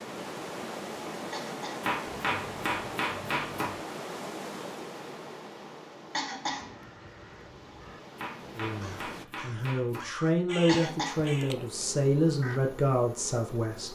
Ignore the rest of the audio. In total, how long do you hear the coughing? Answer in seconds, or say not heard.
2 s.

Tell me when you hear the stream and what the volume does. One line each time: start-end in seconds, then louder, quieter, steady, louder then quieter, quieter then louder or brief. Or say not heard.
0.0-9.2 quieter.